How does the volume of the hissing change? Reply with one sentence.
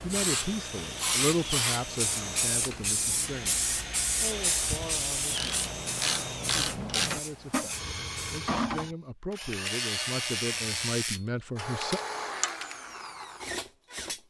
The volume of the hissing goes down.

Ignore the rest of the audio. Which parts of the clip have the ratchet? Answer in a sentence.
You can hear the ratchet from 2.5 to 12.8 s.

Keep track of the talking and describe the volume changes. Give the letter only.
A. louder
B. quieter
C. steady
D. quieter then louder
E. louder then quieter
D.